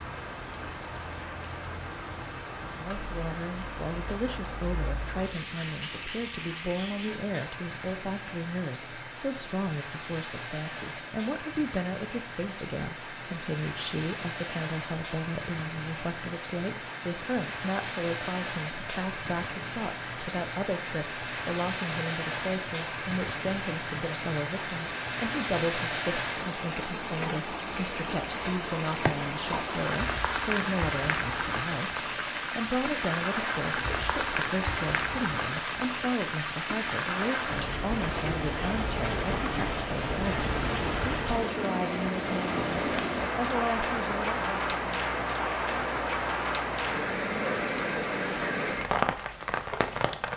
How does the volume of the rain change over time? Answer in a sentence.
The loudness of the rain goes up.